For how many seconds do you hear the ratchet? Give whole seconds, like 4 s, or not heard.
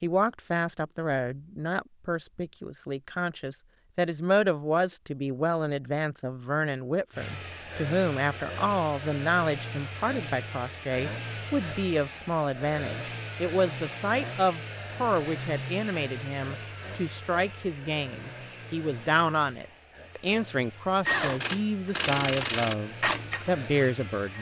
3 s.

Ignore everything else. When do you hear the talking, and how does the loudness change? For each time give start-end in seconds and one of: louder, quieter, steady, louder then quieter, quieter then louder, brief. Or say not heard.
0.0-24.3 steady.